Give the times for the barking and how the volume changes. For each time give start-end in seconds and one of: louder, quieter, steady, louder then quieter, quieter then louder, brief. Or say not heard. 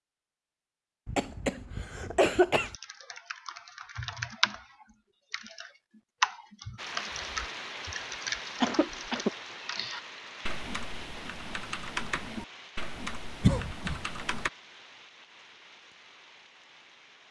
not heard.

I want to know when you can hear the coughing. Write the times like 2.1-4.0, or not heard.
1.1-2.7, 8.6-9.3, 13.4-14.0.